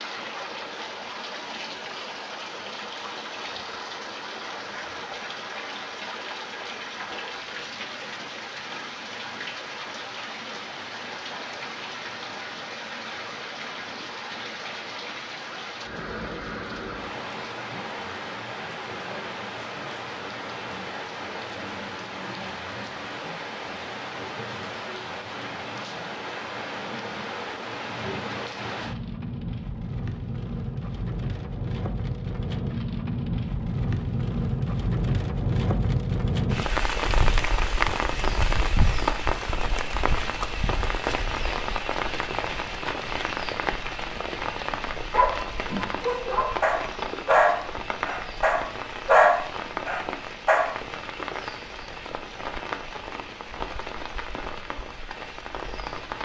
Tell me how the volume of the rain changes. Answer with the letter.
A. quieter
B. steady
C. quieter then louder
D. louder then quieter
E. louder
D.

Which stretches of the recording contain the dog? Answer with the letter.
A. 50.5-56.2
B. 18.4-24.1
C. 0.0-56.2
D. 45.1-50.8
D.